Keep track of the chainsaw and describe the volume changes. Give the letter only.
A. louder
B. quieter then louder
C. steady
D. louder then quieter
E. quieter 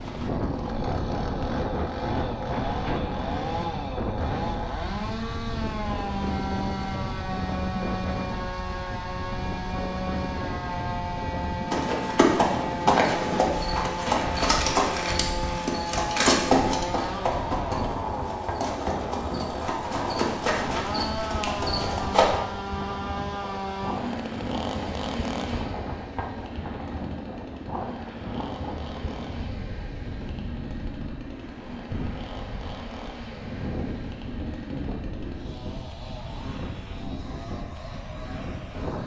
E.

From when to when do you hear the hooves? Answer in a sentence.
The hooves can be heard from 11.7 to 22.3 s.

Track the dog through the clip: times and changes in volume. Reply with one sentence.
You can't hear the dog here.